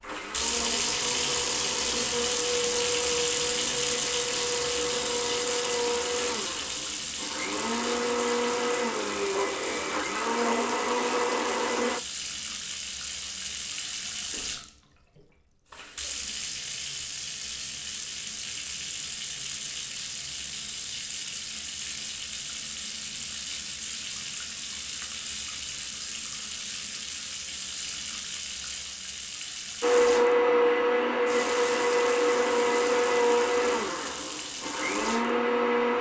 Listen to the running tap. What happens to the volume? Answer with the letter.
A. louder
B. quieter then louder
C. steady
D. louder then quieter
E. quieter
E.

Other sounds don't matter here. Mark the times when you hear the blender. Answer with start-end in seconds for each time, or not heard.
0.0-12.0, 29.8-35.9.